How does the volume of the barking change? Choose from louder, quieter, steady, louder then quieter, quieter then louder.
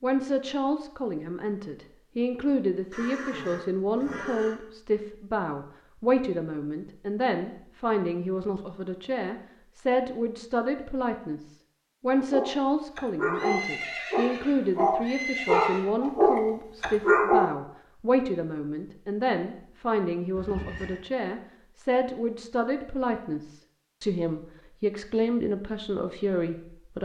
louder.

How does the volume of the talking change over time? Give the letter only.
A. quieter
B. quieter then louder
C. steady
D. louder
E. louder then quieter
C.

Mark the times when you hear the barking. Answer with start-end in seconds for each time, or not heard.
12.2-17.6.